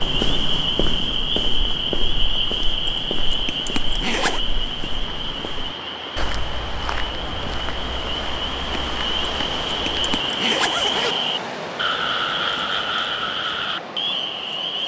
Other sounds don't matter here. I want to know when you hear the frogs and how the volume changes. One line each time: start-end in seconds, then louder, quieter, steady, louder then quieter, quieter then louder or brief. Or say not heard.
0.0-14.8 quieter then louder.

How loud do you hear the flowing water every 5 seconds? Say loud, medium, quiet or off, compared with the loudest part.
medium, loud, loud.